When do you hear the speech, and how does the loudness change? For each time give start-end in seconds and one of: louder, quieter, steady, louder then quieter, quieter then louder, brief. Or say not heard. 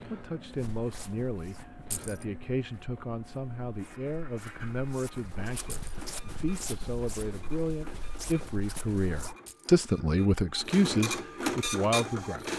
0.1-12.5 louder.